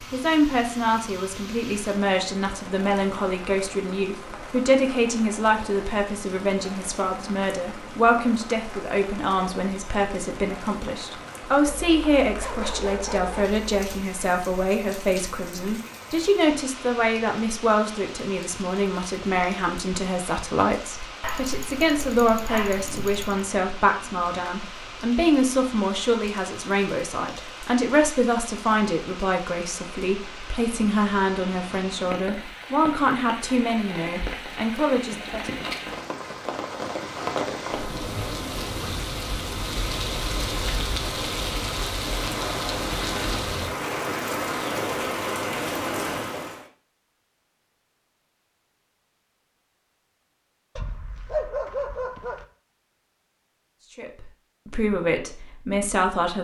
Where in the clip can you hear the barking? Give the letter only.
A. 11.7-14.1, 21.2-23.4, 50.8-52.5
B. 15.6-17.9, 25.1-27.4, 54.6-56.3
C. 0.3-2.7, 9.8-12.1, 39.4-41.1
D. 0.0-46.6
A.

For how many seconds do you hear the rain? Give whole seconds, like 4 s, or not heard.
47 s.